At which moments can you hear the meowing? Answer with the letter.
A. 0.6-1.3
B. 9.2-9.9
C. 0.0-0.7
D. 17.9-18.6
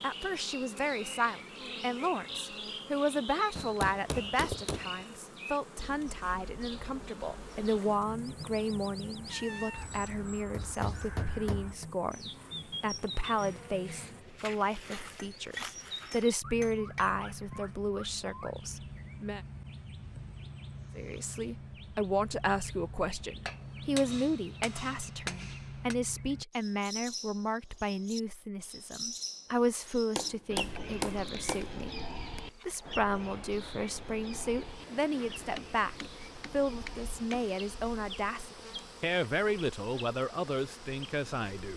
B.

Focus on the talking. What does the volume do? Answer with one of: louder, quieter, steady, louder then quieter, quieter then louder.
steady.